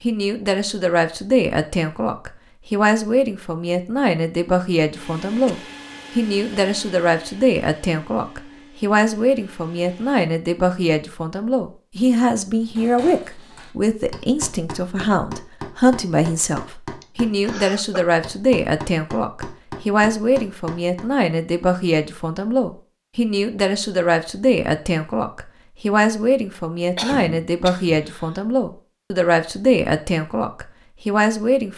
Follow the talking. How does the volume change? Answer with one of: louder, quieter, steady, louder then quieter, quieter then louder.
steady.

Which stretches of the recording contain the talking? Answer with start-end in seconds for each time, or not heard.
0.0-31.7.